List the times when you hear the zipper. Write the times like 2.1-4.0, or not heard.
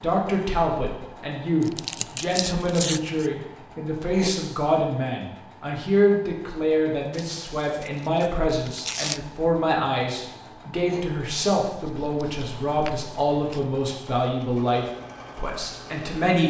not heard.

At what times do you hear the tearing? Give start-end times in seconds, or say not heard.
1.6-3.3, 7.1-9.2, 11.8-13.8.